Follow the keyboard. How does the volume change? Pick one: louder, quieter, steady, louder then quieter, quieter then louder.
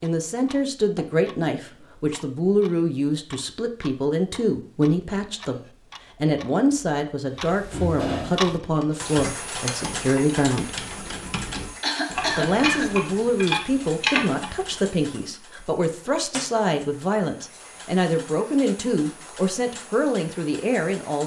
louder.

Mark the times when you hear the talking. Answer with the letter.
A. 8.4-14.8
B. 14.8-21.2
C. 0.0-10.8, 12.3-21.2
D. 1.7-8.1
C.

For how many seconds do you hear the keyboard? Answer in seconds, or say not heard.
6 s.